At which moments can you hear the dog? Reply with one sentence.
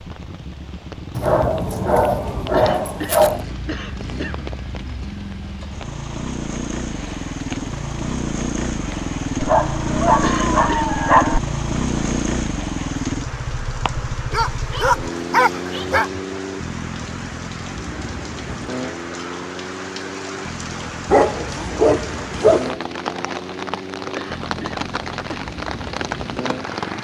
The dog can be heard from 1.1 to 3.5 s, from 9.4 to 11.4 s, from 14.3 to 16.1 s and from 21.1 to 22.8 s.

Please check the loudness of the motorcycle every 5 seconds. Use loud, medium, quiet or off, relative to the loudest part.
medium, loud, loud, medium, medium, medium.